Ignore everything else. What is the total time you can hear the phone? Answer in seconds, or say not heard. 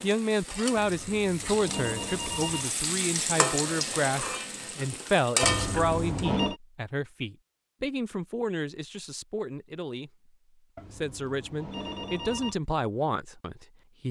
5 s.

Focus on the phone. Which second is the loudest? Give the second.
6 s.